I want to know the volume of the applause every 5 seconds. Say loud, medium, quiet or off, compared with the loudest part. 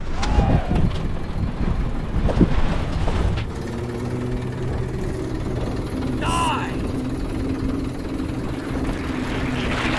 off, loud.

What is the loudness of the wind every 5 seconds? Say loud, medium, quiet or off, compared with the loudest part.
loud, medium.